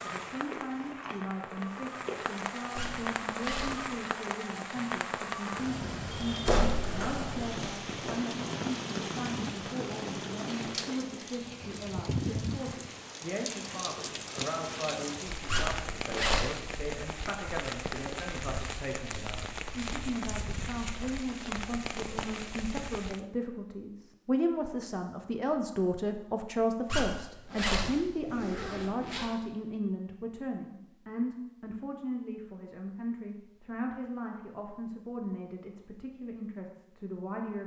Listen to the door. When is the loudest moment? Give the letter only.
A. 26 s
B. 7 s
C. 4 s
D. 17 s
B.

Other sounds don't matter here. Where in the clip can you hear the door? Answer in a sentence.
The door can be heard from 6.5 to 8.2 s.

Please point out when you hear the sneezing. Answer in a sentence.
You can't hear the sneezing here.